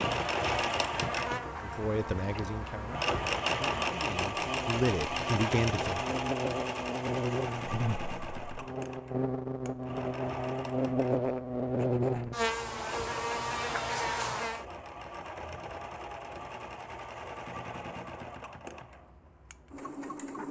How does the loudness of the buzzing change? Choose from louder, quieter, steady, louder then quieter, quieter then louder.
louder.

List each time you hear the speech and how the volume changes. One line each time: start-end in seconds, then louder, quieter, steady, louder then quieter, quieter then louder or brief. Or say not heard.
1.6-6.1 quieter then louder.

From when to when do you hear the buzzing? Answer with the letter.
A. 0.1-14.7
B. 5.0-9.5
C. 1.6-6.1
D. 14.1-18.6
A.